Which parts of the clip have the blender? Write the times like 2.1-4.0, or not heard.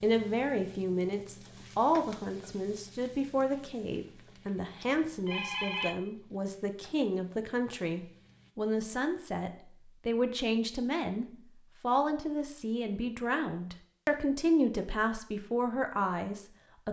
not heard.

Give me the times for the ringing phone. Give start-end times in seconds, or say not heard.
4.8-6.0.